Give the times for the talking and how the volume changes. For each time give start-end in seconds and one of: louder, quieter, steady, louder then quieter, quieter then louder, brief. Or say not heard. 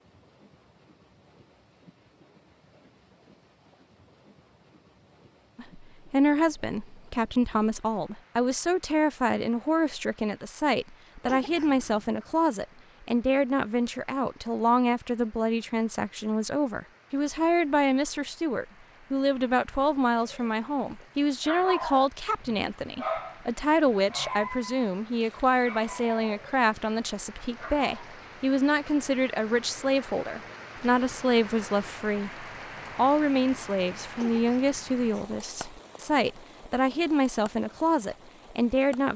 5.5-39.1 steady.